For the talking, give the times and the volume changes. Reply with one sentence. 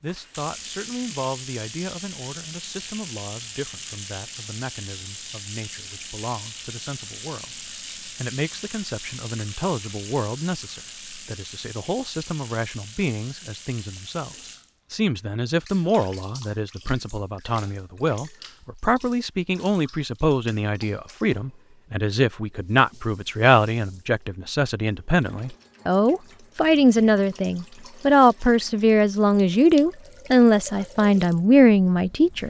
You can hear the talking from 0.0 to 32.4 s, getting louder.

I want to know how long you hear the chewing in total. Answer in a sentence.
The chewing can't be heard in this clip.